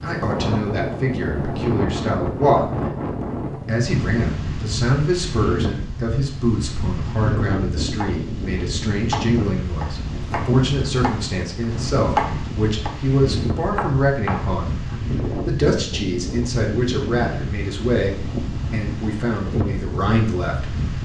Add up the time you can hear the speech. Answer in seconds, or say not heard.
19 s.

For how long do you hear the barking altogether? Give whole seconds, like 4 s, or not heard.
not heard.